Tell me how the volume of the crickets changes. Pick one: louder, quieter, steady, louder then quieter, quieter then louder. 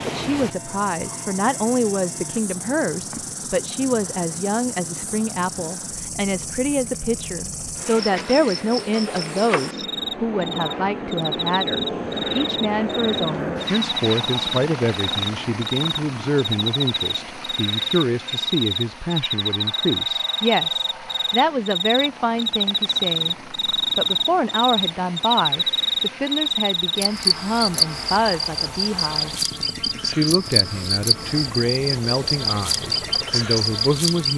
louder.